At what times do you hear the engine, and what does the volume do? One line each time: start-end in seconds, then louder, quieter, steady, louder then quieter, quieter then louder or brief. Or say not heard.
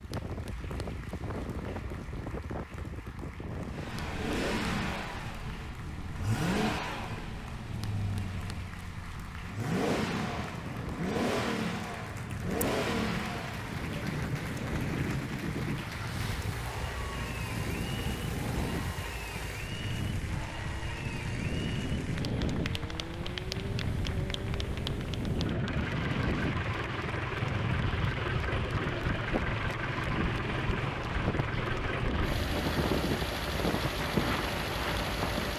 3.7-35.5 quieter then louder.